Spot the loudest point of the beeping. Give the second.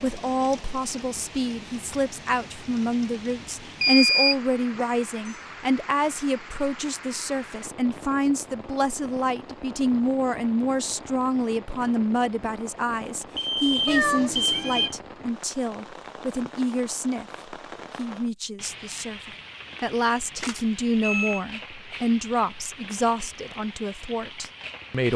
4 s.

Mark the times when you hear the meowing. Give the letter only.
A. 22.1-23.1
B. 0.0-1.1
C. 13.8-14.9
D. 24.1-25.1
C.